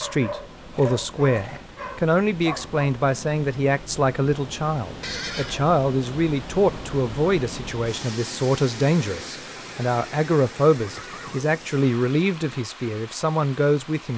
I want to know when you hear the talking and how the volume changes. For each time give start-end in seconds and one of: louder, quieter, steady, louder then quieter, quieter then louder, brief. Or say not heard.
0.0-14.1 steady.